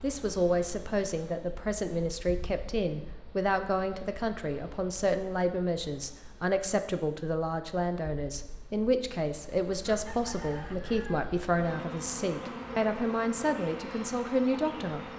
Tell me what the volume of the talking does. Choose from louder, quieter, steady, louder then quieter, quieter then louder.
steady.